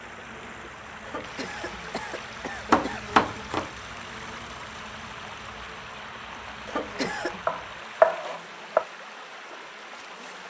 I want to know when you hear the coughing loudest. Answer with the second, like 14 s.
7 s.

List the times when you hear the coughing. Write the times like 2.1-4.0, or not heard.
1.1-3.0, 6.7-7.5.